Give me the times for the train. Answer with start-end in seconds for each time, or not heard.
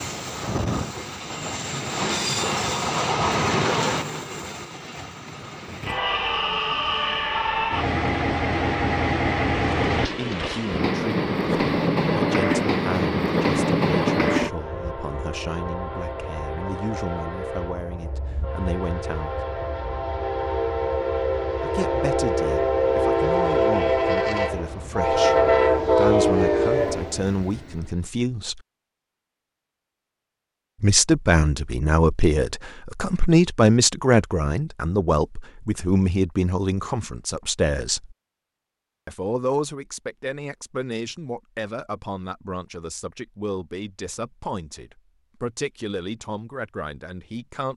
0.0-27.9.